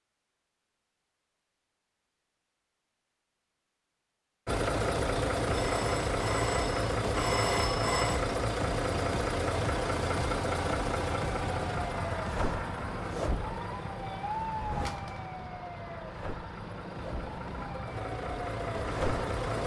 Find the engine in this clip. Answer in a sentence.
The engine can be heard from 4.5 to 19.6 s.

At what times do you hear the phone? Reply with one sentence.
You can hear the phone from 5.5 to 8.2 s and from 14.8 to 15.2 s.